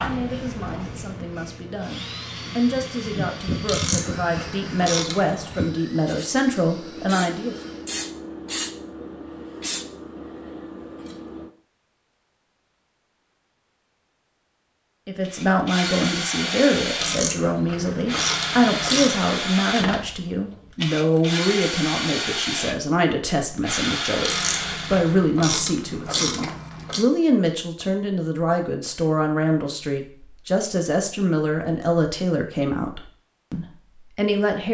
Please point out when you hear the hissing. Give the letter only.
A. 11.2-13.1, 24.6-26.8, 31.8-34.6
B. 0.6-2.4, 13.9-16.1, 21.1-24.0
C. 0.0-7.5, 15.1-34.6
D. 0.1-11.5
D.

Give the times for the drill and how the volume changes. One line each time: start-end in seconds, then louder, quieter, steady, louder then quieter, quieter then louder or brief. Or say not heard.
0.0-8.0 quieter
15.2-25.1 steady.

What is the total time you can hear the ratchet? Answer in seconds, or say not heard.
7 s.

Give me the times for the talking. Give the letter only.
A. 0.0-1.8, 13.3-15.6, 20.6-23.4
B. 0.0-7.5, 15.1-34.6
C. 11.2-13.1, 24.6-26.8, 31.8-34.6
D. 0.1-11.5
B.